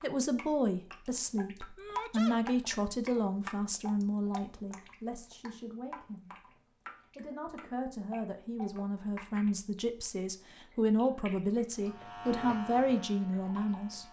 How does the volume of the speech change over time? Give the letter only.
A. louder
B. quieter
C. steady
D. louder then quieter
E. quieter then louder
E.